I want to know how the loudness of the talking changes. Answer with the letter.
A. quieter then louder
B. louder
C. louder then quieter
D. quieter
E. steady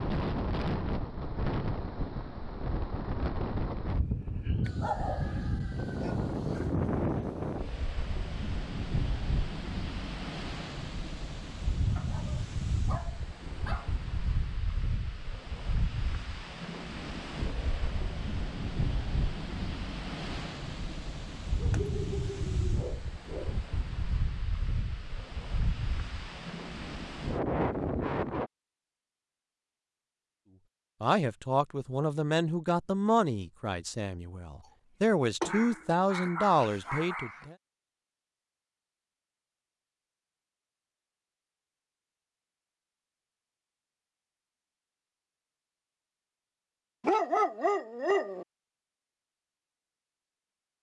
A.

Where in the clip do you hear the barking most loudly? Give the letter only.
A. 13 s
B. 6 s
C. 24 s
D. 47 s
D.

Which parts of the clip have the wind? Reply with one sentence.
You can hear the wind from 0.0 to 28.5 s.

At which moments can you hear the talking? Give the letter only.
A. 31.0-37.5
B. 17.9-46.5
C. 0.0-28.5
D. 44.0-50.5
A.